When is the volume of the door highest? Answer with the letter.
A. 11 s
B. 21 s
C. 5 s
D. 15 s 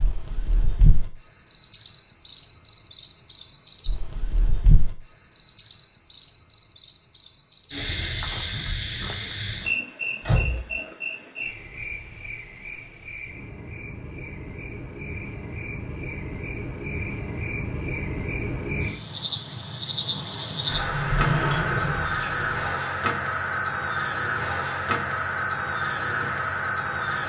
B.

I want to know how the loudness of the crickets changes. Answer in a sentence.
The loudness of the crickets goes down, then up.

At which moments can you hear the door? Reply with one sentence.
The door can be heard from 10.2 to 10.8 s and from 20.7 to 22.4 s.